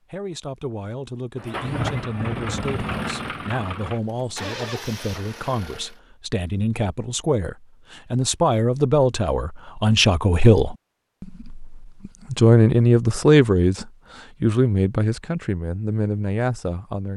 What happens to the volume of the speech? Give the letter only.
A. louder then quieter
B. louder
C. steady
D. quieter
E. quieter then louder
A.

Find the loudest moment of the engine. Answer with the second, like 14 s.
2 s.